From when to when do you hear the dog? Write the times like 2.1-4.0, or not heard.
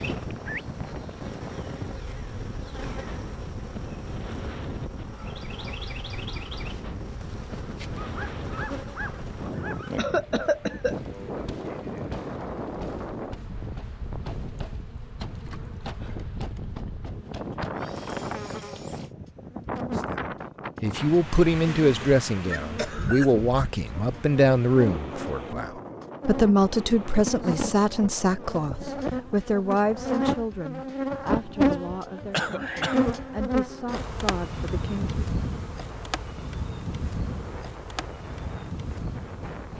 8.0-9.9.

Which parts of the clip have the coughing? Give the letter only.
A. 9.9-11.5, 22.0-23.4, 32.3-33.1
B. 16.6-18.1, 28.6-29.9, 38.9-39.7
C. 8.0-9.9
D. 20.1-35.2
A.